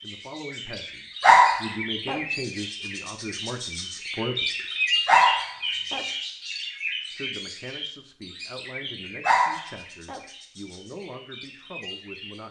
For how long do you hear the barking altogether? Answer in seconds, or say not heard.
3 s.